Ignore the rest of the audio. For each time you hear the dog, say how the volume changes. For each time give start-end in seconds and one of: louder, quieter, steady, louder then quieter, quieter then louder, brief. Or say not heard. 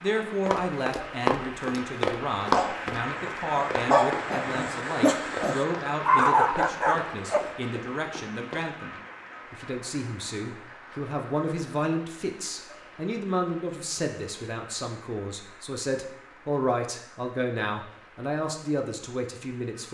2.5-7.4 louder.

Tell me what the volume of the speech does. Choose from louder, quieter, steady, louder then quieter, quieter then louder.
steady.